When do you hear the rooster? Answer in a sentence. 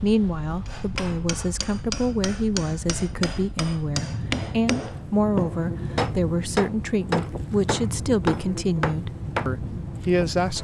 The rooster can't be heard in this clip.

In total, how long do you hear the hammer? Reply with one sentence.
You can hear the hammer for 9 seconds altogether.